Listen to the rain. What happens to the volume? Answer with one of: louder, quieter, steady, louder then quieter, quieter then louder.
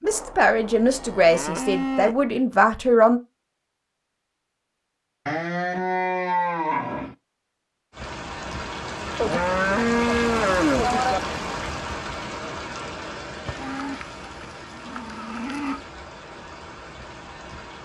quieter.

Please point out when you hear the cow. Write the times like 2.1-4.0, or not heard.
0.1-2.3, 5.2-7.2, 9.2-11.2, 13.4-15.8.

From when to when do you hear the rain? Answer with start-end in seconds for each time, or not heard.
7.9-17.8.